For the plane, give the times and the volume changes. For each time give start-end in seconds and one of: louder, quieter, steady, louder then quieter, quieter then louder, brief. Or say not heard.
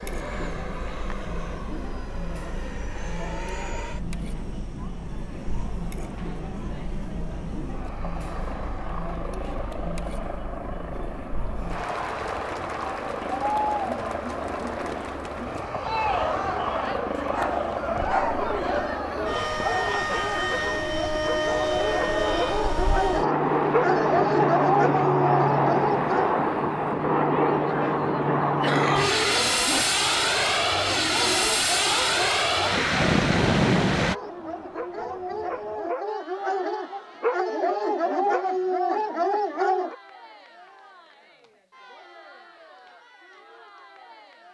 0.0-34.1 louder.